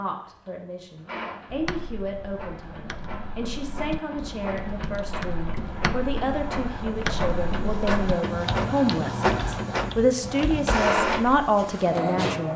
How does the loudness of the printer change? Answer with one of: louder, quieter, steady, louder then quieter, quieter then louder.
louder.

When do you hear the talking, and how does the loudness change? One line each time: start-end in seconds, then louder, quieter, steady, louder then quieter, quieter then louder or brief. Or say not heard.
0.0-12.5 louder.